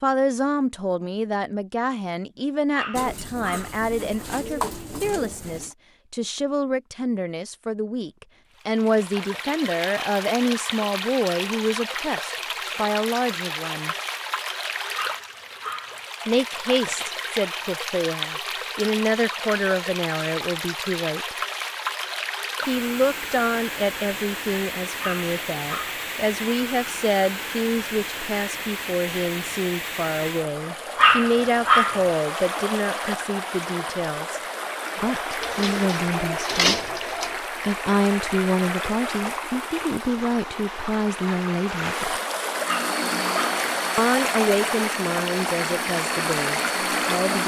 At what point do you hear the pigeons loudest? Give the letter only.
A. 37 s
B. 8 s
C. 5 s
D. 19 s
A.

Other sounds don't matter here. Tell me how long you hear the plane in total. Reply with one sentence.
The plane can be heard for 5 seconds in total.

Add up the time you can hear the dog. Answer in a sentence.
The dog can be heard for 5 seconds in total.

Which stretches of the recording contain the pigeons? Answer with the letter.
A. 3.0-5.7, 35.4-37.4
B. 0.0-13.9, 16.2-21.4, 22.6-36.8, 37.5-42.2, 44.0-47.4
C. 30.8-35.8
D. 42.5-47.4
A.